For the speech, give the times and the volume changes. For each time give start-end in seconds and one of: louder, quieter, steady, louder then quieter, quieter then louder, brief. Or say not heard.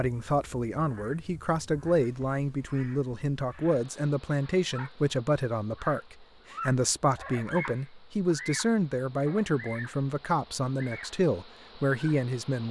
0.0-12.6 steady.